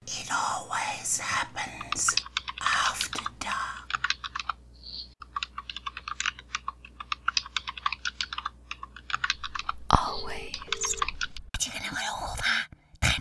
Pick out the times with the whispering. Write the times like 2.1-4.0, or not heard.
0.1-3.9, 9.5-13.1.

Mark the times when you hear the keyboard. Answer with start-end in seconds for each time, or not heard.
1.6-11.4.